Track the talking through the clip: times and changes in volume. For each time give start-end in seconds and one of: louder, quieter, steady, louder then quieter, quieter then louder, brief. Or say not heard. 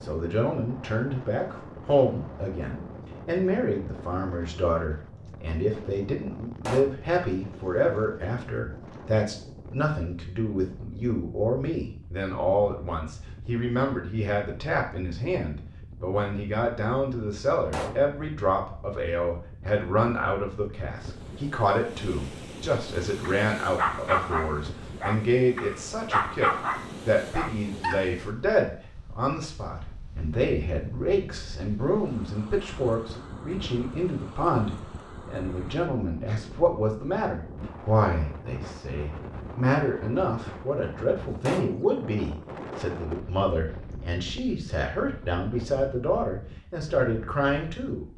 0.0-48.0 steady.